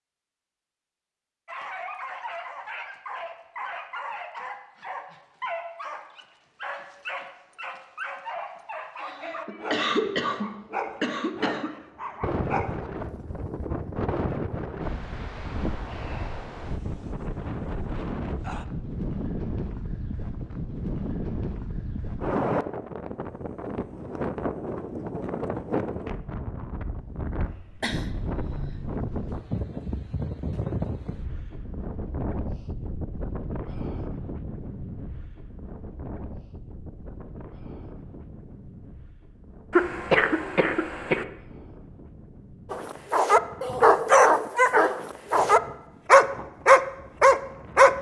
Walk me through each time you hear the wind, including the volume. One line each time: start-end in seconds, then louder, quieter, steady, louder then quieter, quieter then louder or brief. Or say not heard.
12.2-47.9 quieter.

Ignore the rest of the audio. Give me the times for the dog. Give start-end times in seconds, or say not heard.
1.4-12.9, 42.7-47.9.